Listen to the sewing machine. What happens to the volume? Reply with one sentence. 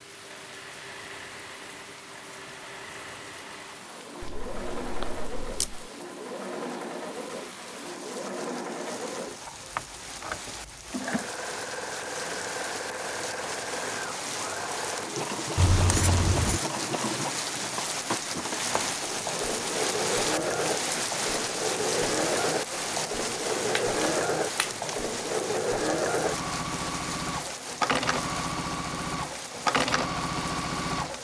The loudness of the sewing machine goes up.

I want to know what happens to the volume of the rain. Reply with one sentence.
The volume of the rain goes up, then down.